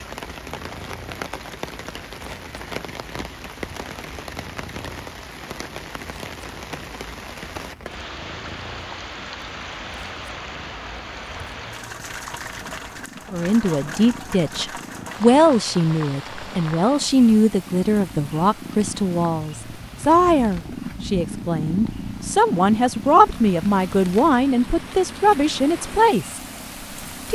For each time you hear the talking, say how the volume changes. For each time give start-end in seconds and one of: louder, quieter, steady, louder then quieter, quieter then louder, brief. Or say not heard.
13.3-26.4 steady.